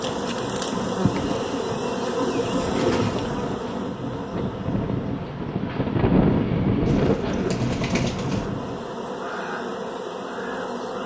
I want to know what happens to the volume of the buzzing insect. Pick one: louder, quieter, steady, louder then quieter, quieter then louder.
quieter then louder.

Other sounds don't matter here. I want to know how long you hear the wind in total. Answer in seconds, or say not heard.
9 s.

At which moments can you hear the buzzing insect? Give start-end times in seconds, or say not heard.
0.0-11.0.